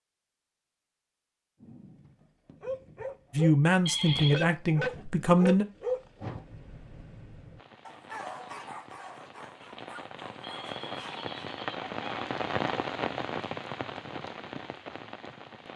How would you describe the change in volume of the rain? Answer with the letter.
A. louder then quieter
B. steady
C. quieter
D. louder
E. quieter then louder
A.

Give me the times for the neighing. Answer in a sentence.
The neighing can be heard from 3.9 to 4.5 s and from 10.4 to 12.1 s.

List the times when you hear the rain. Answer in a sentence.
The rain can be heard from 7.5 to 15.7 s.